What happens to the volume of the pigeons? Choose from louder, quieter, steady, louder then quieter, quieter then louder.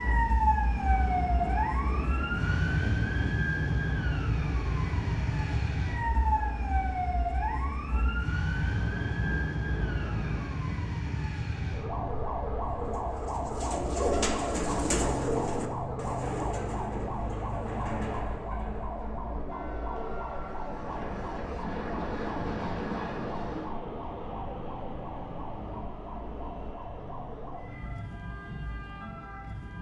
quieter.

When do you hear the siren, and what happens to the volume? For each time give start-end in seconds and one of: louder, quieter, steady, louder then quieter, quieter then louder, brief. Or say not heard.
0.0-29.7 quieter.